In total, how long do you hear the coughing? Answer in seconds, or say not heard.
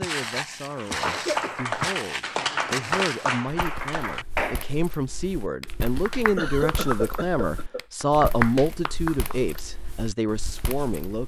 2 s.